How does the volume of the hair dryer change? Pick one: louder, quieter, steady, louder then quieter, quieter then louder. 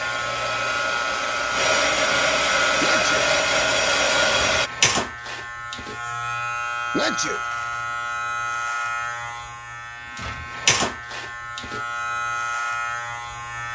louder.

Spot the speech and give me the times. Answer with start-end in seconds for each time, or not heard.
not heard.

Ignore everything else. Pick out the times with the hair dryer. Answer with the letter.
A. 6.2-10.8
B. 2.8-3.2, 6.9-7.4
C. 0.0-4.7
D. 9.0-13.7
C.